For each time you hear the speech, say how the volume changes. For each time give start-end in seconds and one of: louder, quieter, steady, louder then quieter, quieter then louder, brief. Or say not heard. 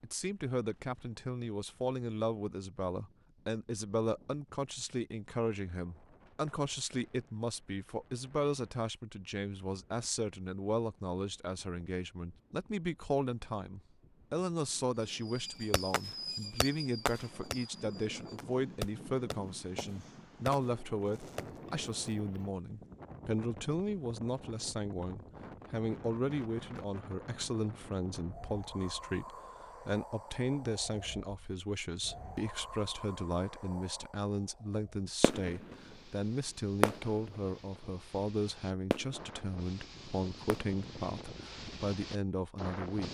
0.0-43.0 steady.